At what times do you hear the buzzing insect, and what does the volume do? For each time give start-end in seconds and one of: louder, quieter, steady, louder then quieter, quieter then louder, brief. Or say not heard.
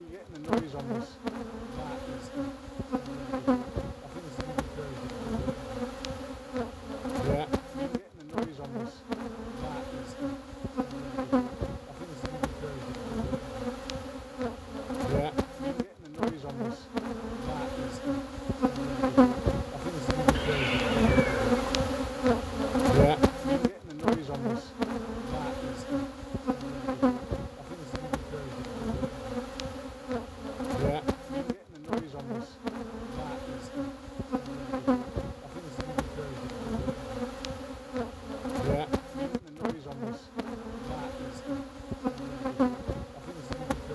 0.0-43.9 louder then quieter.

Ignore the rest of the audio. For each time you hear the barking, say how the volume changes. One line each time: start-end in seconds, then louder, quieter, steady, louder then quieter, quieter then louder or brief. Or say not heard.
not heard.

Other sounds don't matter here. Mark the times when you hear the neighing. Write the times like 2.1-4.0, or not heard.
20.3-21.9.